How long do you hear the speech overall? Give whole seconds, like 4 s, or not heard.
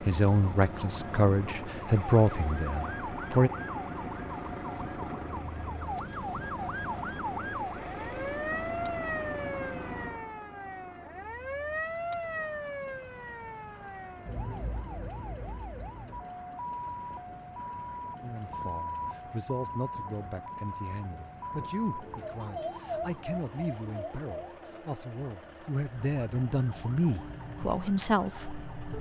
14 s.